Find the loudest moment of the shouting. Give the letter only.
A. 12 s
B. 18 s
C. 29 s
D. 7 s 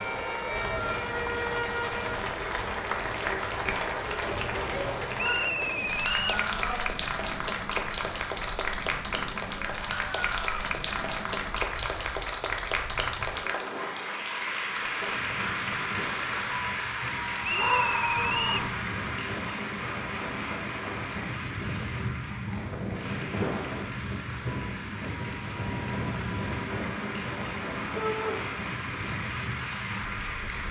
B.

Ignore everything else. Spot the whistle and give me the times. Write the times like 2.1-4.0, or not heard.
5.2-6.4, 17.4-18.6.